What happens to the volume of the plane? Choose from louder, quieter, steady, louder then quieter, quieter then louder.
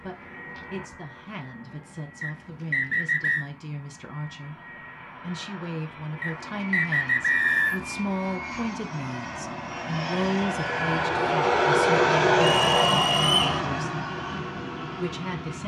louder.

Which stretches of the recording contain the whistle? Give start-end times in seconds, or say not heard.
2.2-3.5, 6.2-7.8, 12.6-13.4.